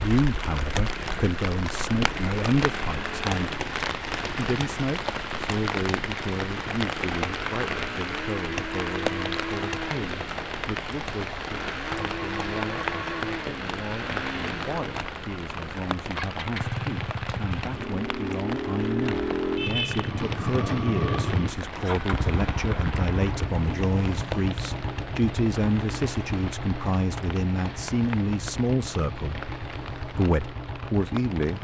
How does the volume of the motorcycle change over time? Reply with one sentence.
The loudness of the motorcycle goes up, then down.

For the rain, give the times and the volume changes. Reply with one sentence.
You can hear the rain from 0.0 to 31.5 s, getting quieter.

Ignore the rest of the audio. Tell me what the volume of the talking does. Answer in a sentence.
The loudness of the talking goes down, then up.